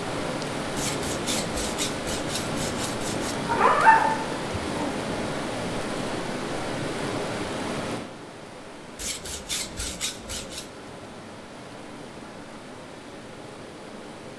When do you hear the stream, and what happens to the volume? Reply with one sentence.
You can hear the stream from 0.0 to 14.3 s, getting quieter.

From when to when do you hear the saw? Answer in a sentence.
You can hear the saw from 0.8 to 3.4 s and from 8.9 to 10.7 s.